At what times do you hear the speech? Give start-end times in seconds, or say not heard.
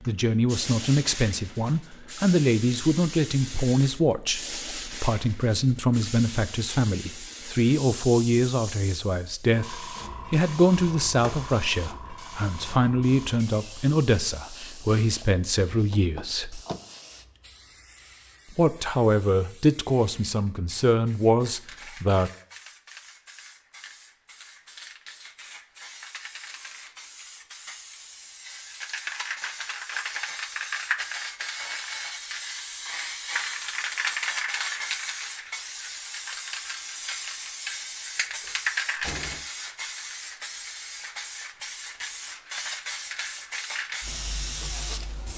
0.1-16.6, 18.6-22.3.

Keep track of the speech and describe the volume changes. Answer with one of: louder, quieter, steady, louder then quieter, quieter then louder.
steady.